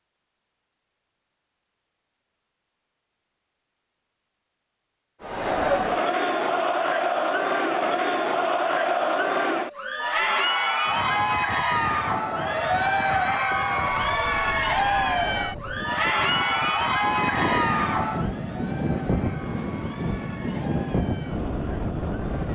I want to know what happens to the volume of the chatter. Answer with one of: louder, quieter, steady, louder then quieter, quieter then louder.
quieter.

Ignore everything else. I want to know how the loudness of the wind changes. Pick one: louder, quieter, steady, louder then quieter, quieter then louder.
louder.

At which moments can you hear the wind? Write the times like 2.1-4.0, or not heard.
10.8-22.4.